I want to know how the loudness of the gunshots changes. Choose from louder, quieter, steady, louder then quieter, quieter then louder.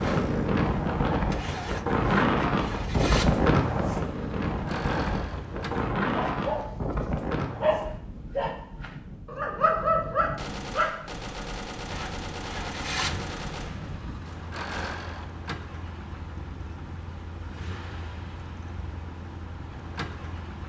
quieter.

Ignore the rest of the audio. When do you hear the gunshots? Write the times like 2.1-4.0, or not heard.
10.3-14.9.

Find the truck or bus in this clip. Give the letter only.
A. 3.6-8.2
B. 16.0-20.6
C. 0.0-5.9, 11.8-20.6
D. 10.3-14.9
C.